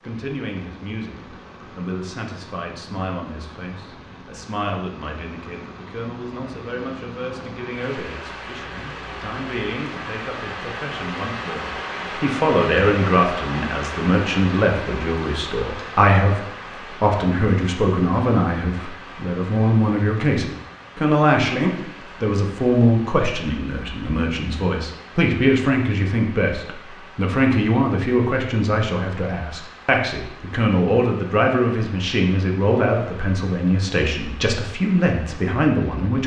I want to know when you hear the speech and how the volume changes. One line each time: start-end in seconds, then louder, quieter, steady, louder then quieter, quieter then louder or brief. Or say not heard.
0.0-16.4 louder
17.0-36.2 steady.